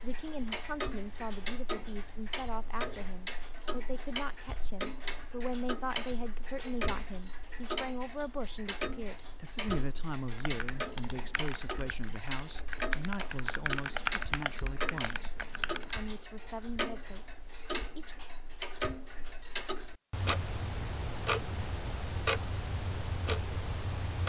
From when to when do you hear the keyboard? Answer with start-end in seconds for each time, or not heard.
10.3-15.9.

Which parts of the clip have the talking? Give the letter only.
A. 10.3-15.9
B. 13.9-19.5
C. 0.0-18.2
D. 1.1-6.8
C.